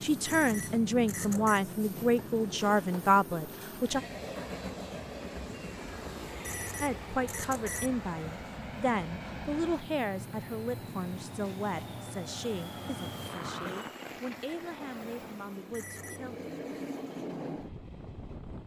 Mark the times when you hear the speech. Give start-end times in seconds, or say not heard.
0.0-4.0, 6.8-16.6.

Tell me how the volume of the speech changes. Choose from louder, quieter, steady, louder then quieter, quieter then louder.
quieter.